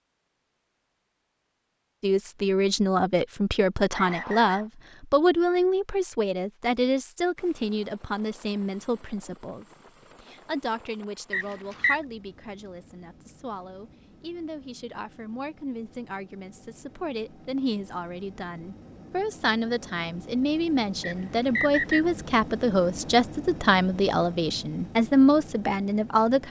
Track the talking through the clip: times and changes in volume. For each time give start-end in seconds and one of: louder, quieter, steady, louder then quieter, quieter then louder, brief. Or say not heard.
2.0-26.4 quieter then louder.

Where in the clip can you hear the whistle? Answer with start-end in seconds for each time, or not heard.
3.9-4.7, 11.3-12.0, 21.0-22.1.